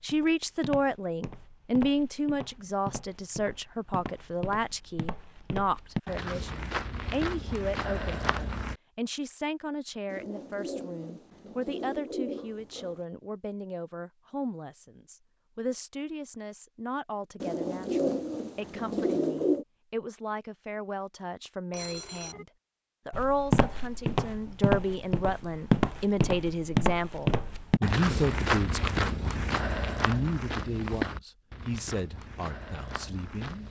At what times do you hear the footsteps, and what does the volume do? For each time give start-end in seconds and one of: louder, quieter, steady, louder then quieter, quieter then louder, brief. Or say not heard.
0.0-8.8 louder
23.1-33.6 quieter.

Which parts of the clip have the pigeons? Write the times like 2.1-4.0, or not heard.
10.1-13.0, 17.4-19.6.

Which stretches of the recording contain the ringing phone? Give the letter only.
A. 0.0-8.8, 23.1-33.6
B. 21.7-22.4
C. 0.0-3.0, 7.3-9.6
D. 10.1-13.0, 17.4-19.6
B.